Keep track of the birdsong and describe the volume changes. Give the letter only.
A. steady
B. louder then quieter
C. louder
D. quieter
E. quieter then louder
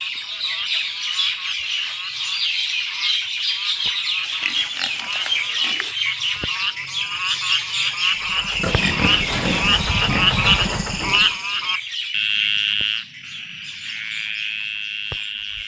D.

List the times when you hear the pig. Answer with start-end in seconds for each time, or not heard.
4.2-6.0, 8.6-11.3.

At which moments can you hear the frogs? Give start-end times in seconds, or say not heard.
0.0-15.6.